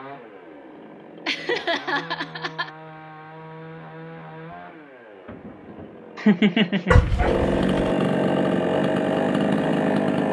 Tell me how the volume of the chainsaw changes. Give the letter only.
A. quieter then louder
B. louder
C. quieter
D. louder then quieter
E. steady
B.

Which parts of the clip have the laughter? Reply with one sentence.
You can hear the laughter from 1.2 to 2.7 s and from 6.2 to 7.1 s.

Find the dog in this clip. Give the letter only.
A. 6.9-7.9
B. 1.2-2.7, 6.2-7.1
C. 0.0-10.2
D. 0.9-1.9
A.